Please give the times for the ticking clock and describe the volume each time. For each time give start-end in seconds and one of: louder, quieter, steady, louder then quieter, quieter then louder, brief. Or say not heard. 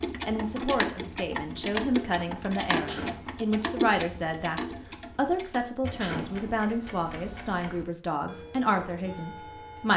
0.0-9.9 quieter.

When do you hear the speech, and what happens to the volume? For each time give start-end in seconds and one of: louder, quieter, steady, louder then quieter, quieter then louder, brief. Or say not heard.
0.2-9.9 steady.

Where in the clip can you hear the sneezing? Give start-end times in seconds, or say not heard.
2.9-3.3, 6.0-6.4.